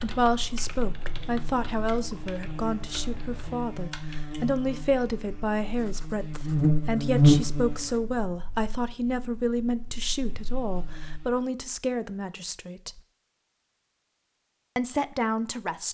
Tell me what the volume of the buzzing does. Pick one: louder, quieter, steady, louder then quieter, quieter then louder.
louder then quieter.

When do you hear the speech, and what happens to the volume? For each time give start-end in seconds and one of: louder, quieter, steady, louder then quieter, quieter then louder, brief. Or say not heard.
0.0-13.0 steady
14.8-15.9 brief.